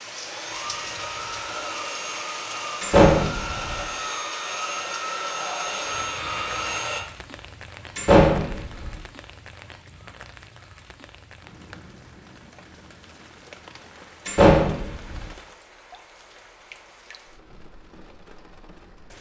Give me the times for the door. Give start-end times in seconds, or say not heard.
2.8-3.8, 8.0-8.9, 14.2-15.2.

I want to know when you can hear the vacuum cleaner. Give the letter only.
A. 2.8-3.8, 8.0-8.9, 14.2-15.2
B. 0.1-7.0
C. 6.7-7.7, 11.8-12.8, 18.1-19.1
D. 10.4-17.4
B.